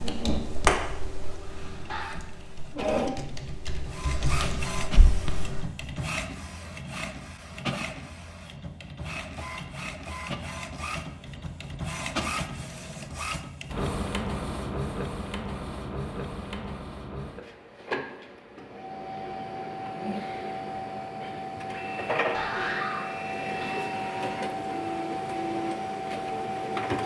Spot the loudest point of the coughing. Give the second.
23 s.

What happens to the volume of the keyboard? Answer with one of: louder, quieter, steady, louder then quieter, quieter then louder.
quieter then louder.